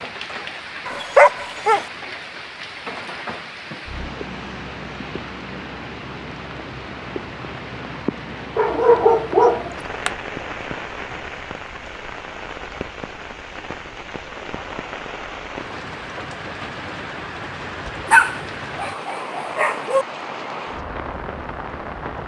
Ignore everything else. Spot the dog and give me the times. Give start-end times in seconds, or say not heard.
0.8-1.9, 8.6-10.1, 18.1-20.1.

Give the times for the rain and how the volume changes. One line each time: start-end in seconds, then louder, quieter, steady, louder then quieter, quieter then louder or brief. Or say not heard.
0.0-22.2 steady.